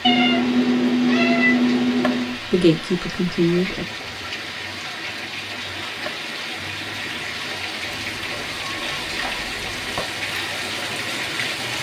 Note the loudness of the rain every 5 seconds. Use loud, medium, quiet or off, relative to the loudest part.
medium, loud, loud.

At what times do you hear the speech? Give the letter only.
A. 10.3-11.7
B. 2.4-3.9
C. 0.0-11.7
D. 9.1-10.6
B.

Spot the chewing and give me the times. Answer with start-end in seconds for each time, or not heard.
not heard.